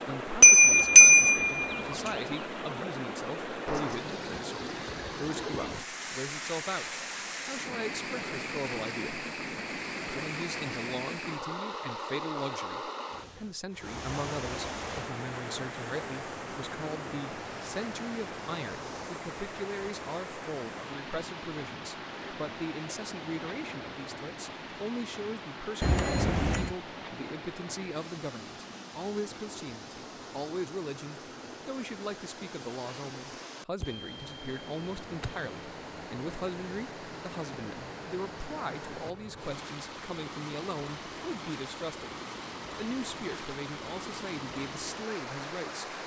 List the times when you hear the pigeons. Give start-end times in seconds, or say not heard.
not heard.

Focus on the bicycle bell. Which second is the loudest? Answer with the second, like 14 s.
1 s.